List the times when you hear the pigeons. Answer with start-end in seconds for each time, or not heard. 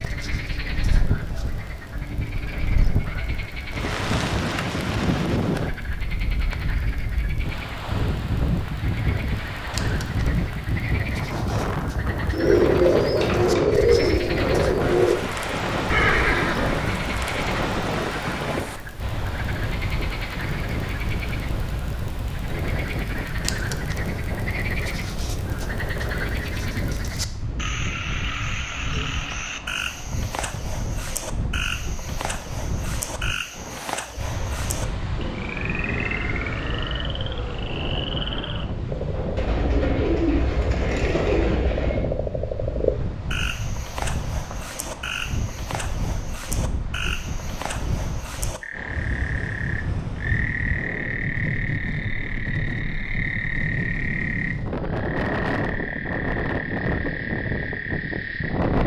12.3-15.2, 39.4-42.0.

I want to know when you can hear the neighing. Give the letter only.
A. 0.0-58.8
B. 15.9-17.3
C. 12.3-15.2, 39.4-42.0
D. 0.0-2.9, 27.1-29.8
B.